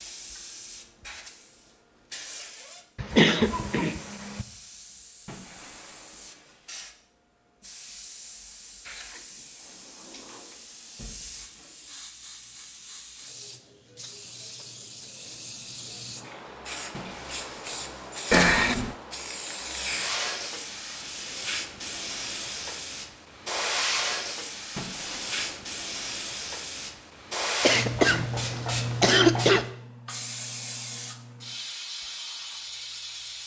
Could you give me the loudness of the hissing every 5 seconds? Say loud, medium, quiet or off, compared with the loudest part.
quiet, quiet, quiet, medium, loud, loud, medium.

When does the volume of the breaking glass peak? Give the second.
25 s.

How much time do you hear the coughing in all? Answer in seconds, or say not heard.
4 s.